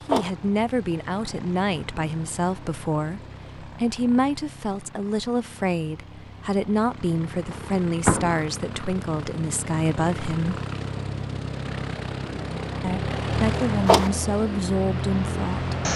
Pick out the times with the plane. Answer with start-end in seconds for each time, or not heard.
0.0-15.9.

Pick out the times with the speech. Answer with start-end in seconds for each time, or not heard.
0.1-10.6, 12.8-15.9.